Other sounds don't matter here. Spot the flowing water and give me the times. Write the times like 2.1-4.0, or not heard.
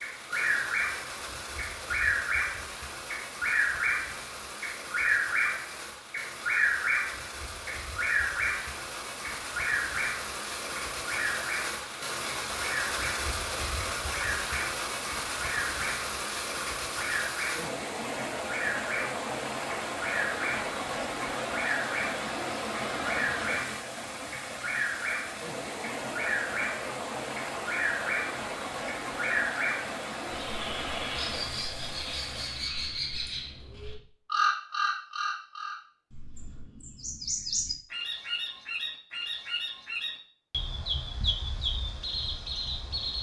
0.0-32.7.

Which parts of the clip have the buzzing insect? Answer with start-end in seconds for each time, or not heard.
not heard.